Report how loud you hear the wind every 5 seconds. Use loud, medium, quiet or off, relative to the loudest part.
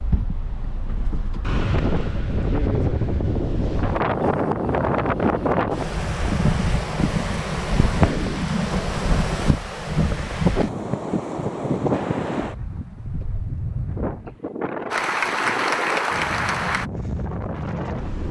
loud, loud, loud, medium.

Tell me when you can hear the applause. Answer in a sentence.
The applause can be heard from 14.9 to 16.9 s.